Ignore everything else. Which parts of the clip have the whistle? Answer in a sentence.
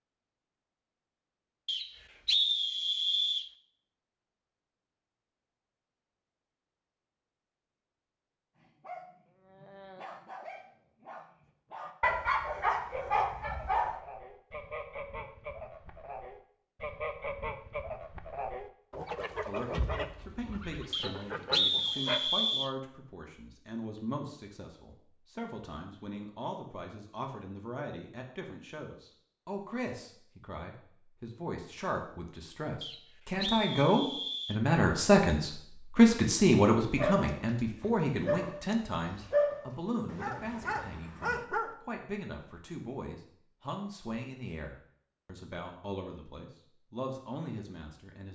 You can hear the whistle from 1.6 to 3.5 s, from 20.9 to 22.8 s and from 32.8 to 34.6 s.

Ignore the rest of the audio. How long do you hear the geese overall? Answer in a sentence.
You can hear the geese for 9 seconds altogether.